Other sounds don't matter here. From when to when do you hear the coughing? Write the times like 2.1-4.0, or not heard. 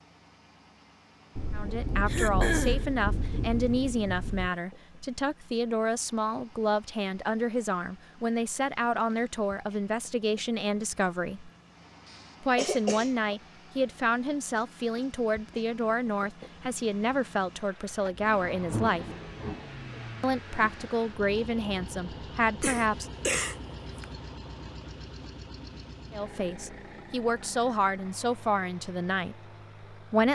2.0-2.9, 12.1-13.3, 22.6-24.1.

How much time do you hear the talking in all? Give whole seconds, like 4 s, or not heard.
24 s.